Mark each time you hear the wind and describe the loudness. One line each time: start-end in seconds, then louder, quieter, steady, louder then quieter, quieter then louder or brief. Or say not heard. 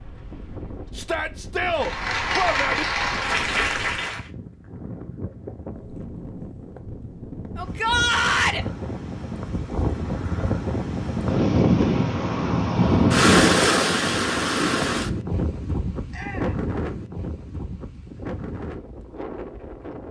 0.0-20.0 louder then quieter.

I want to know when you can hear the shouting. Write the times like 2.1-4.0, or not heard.
0.9-2.9, 7.5-8.7, 16.1-16.6.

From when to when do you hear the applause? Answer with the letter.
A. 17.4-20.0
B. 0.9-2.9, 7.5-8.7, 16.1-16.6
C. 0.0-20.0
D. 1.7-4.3
D.